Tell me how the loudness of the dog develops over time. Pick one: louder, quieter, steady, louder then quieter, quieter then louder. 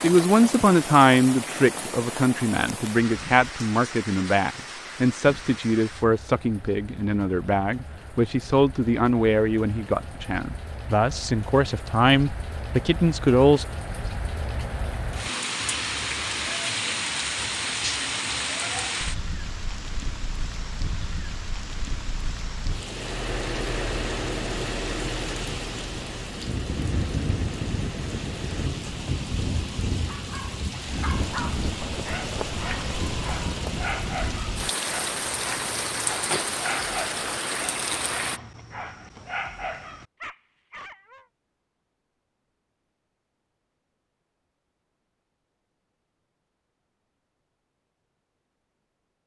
steady.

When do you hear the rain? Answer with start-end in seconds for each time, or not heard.
0.0-38.4.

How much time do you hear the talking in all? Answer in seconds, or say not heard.
14 s.